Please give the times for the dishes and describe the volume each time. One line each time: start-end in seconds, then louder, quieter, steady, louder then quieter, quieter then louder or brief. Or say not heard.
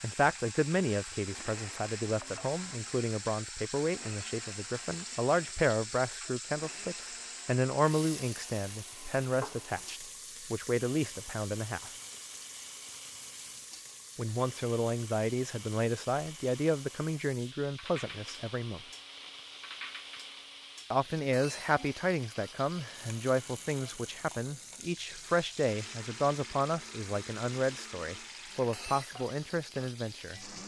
not heard.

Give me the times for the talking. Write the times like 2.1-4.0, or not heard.
0.0-11.9, 14.2-18.8, 20.9-30.4.